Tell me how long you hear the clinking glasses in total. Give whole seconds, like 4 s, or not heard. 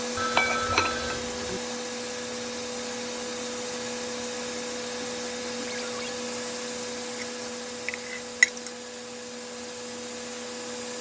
3 s.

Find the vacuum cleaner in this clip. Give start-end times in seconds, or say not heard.
0.0-10.9.